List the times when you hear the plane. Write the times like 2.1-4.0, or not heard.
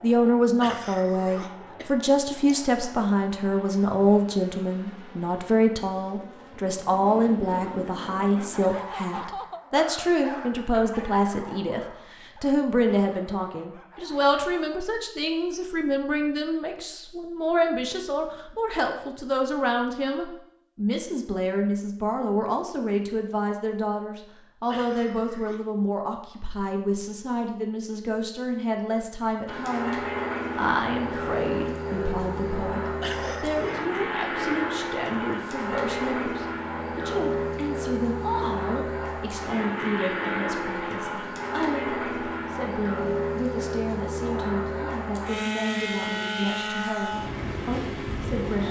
0.0-8.7, 29.4-48.6.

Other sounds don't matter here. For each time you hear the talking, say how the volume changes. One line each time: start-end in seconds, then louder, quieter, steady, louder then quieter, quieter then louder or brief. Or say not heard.
0.0-48.6 quieter.